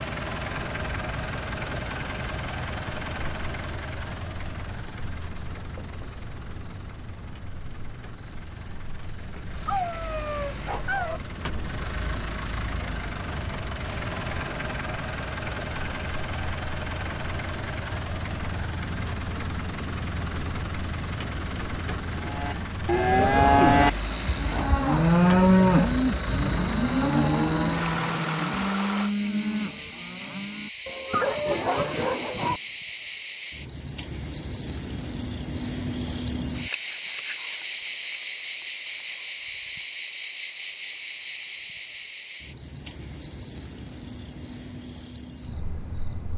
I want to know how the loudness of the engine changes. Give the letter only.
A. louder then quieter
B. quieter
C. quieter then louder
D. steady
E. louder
C.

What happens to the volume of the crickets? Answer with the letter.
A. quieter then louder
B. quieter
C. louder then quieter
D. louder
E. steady
D.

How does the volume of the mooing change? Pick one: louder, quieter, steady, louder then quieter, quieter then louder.
quieter.